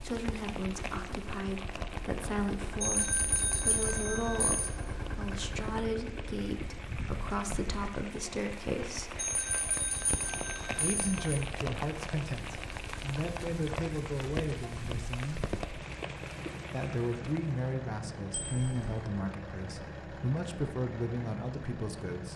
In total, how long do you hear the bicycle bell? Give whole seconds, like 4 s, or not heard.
5 s.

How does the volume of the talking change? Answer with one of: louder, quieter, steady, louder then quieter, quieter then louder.
steady.